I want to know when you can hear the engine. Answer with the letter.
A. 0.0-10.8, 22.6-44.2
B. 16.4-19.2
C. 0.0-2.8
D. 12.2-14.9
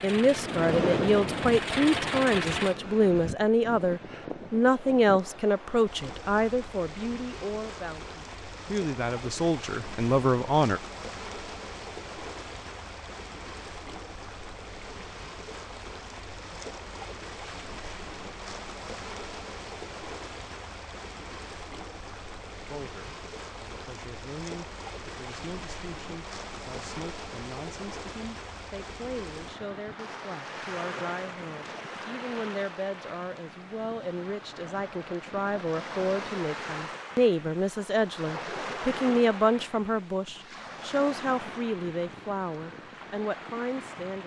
C.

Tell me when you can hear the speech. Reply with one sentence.
The speech can be heard from 0.0 to 10.8 s and from 22.6 to 44.2 s.